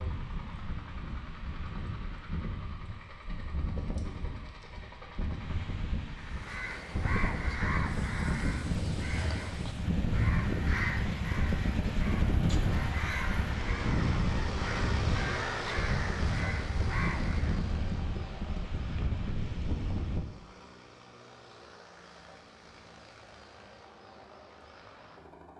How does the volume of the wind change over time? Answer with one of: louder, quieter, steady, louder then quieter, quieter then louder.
louder.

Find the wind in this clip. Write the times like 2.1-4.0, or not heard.
0.0-20.2.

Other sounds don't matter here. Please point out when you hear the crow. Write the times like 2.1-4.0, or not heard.
6.2-17.6.